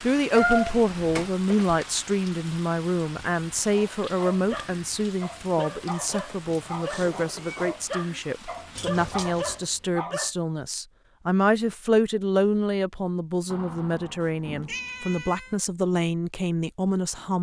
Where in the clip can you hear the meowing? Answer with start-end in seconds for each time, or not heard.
0.3-1.2, 6.1-7.8, 14.2-15.7.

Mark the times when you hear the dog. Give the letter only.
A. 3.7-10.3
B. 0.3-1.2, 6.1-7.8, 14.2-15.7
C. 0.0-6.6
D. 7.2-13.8
A.